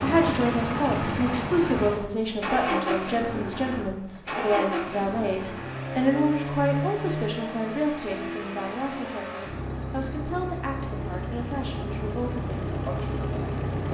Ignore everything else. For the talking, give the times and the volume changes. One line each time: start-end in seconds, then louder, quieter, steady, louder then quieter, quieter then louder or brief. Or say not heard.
0.0-13.8 quieter.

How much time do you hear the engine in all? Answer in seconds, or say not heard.
14 s.